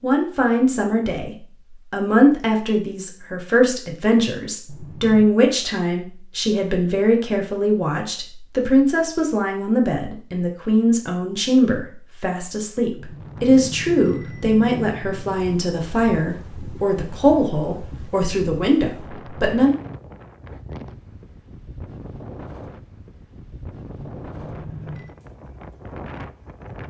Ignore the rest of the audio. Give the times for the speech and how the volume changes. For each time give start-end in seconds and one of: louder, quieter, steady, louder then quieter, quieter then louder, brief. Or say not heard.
0.0-19.8 steady.